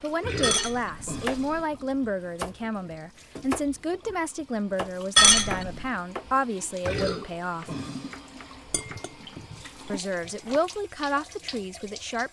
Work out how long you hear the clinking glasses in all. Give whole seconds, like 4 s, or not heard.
4 s.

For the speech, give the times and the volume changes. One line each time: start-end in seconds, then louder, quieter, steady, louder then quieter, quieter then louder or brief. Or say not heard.
0.0-7.7 steady
9.8-12.2 brief.